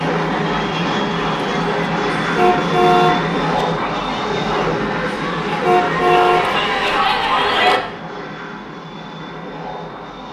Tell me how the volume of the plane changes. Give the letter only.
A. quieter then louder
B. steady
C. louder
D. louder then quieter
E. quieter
E.